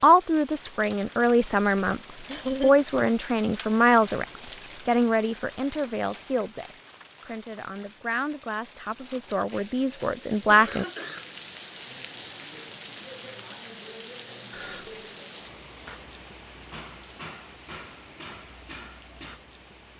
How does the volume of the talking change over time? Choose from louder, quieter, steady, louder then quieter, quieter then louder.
quieter then louder.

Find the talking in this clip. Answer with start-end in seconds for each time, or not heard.
0.0-4.2, 4.8-10.8.